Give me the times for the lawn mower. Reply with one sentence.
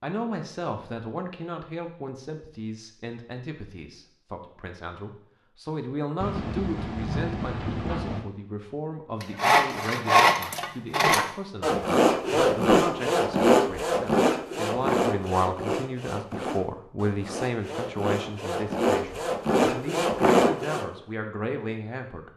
You can't hear the lawn mower here.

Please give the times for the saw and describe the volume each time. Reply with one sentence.
You can hear the saw from 9.2 to 20.9 s, getting quieter then louder.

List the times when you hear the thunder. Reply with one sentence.
The thunder can be heard from 6.2 to 8.2 s.